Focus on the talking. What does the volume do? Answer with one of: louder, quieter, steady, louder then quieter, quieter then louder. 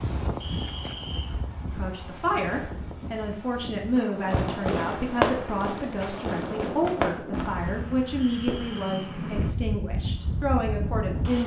steady.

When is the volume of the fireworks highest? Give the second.
5 s.